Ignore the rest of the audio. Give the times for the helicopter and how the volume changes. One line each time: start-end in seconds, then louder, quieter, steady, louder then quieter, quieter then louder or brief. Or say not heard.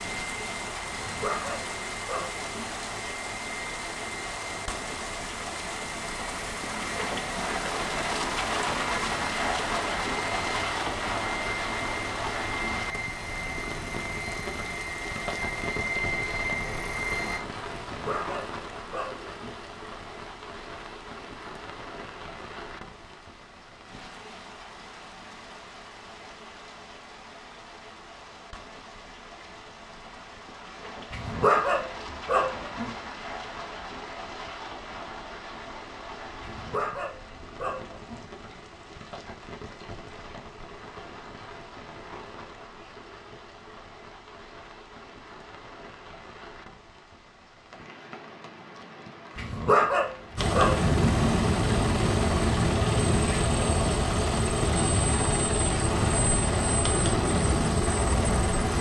0.1-17.4 louder
50.4-58.7 steady.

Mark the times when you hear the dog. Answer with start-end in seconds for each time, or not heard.
0.9-2.7, 17.8-19.6, 31.1-32.9, 36.4-38.2, 49.4-50.9.